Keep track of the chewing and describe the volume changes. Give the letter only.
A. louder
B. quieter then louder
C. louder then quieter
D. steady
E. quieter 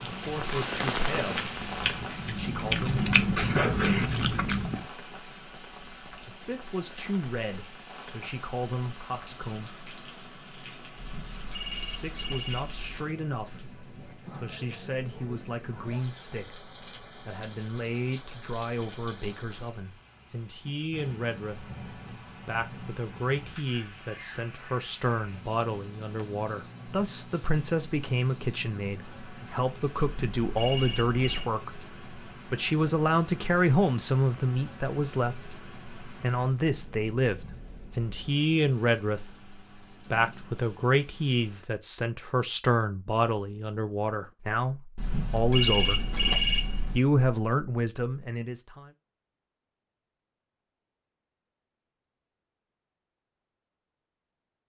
A.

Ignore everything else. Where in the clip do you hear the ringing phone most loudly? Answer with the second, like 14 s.
46 s.